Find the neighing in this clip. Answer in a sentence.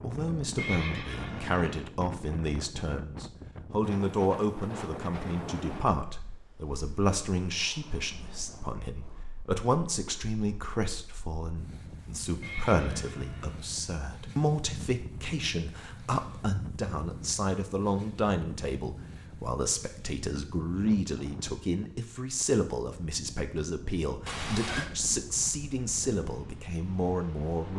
You can hear the neighing from 0.6 to 1.8 s, from 12.4 to 13.7 s and from 24.2 to 24.9 s.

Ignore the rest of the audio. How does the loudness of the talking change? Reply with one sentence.
The loudness of the talking stays about the same.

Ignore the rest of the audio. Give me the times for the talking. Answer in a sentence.
You can hear the talking from 0.0 to 27.7 s.